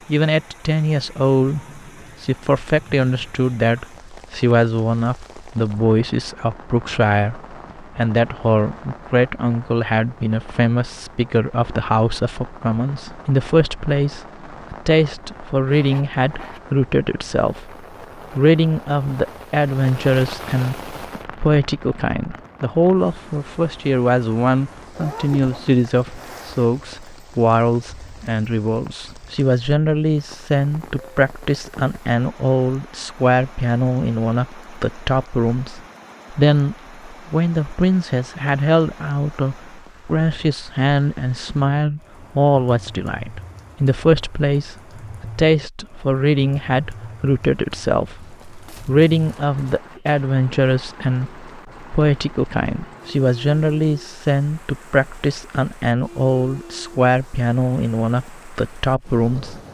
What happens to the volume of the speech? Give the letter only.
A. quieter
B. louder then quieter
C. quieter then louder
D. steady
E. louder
D.